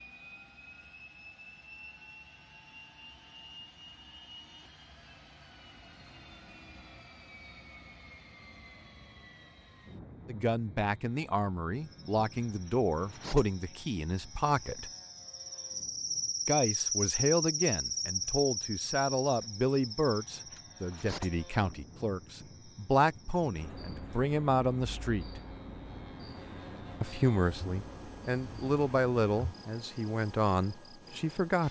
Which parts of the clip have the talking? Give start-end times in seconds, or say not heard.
10.2-14.9, 16.4-25.4, 27.0-31.6.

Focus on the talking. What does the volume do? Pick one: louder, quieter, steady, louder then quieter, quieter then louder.
steady.